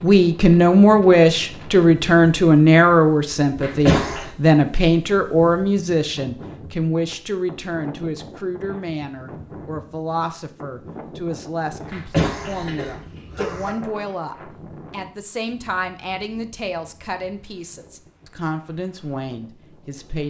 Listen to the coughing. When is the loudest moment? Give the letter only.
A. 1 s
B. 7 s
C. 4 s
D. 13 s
C.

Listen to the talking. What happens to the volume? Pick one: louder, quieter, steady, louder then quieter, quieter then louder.
quieter.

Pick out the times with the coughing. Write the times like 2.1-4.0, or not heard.
3.6-4.2, 11.9-13.7.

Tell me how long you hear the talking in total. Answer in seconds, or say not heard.
20 s.